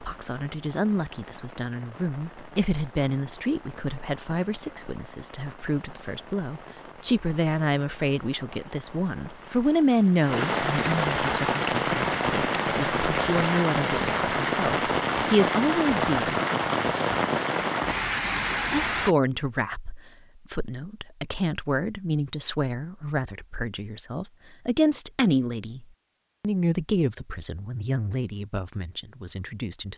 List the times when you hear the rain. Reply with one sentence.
You can hear the rain from 0.0 to 19.1 s.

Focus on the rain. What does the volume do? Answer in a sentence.
The loudness of the rain goes up.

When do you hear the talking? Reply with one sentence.
You can hear the talking from 0.0 to 16.4 s and from 18.7 to 29.9 s.